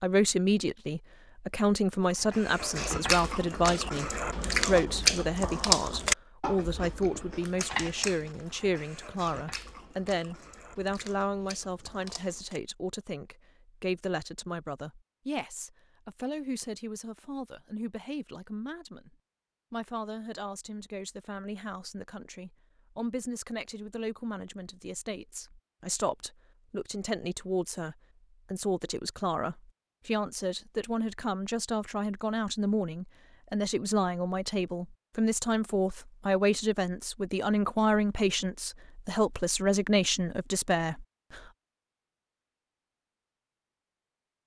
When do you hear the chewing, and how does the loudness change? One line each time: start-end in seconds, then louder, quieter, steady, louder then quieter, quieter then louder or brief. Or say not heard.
2.1-12.6 louder then quieter.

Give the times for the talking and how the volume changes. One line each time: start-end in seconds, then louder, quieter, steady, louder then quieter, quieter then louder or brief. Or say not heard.
0.0-41.4 quieter then louder.